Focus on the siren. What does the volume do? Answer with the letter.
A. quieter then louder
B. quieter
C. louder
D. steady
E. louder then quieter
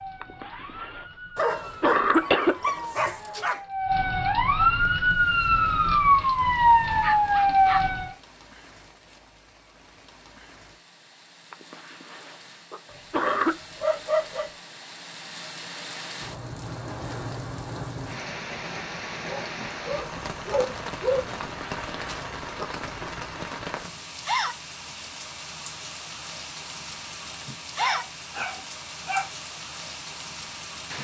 C.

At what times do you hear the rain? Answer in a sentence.
You can hear the rain from 5.0 to 30.9 s.